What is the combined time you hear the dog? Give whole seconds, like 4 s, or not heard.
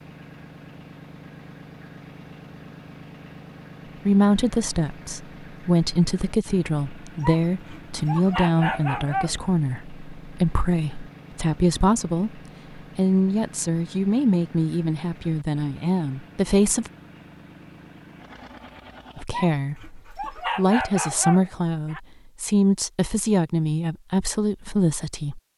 5 s.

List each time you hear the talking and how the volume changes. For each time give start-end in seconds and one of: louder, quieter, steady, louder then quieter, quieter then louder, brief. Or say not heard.
4.0-16.9 steady
19.1-25.4 louder.